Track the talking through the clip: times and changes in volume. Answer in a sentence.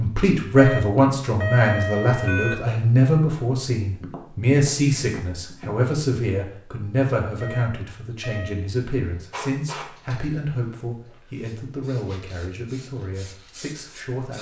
You can hear the talking from 0.0 to 14.3 s, getting quieter.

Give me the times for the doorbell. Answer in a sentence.
The doorbell can be heard from 0.6 to 2.5 s and from 7.4 to 8.6 s.